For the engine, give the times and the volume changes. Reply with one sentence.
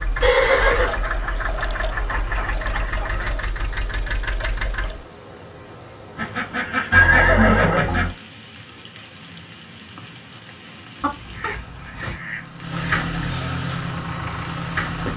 You can hear the engine from 0.0 to 5.0 s, at a steady volume; and briefly from 13.8 to 15.1 s.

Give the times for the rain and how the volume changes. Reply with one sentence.
The rain can be heard from 0.0 to 15.1 s, getting louder.